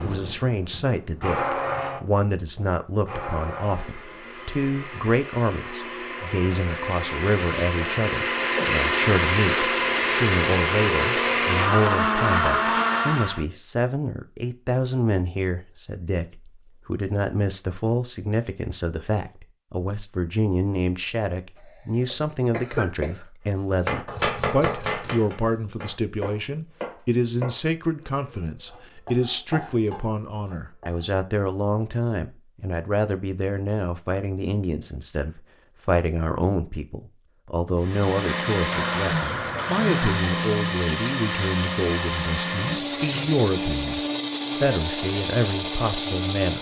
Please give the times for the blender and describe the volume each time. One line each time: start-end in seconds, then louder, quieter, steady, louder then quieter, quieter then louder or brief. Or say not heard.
0.0-13.4 quieter then louder
37.8-46.5 steady.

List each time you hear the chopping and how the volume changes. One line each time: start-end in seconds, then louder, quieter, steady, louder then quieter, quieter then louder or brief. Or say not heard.
23.9-31.1 quieter then louder.